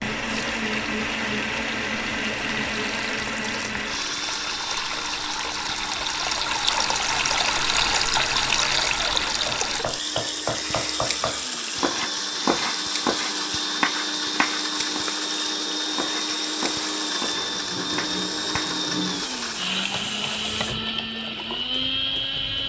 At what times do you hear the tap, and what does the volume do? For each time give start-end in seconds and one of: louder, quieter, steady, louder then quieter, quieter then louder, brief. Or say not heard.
0.1-22.6 louder then quieter.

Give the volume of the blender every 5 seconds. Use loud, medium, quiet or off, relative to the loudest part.
loud, medium, loud, loud, loud.